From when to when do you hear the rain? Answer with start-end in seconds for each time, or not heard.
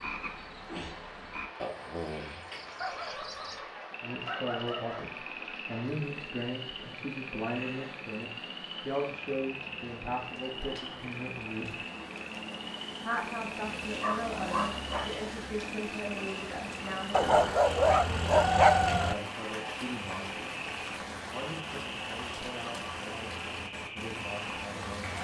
0.0-25.1.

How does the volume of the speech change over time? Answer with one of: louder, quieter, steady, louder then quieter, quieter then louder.
quieter.